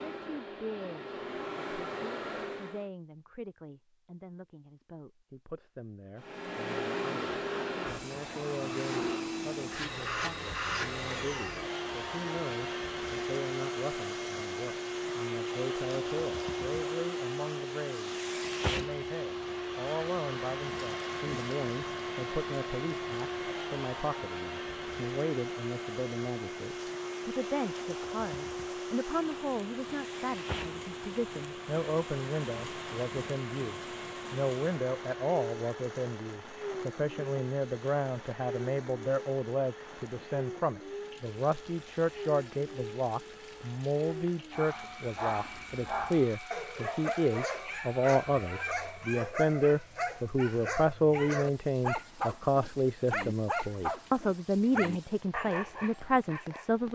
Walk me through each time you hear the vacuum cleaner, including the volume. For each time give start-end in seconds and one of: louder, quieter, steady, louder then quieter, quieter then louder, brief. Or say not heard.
0.0-2.9 brief
6.2-49.2 quieter.